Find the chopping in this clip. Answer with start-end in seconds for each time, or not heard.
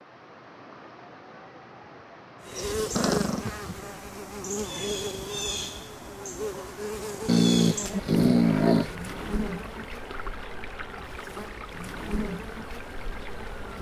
not heard.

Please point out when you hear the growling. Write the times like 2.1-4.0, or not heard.
3.0-3.9, 7.2-8.9.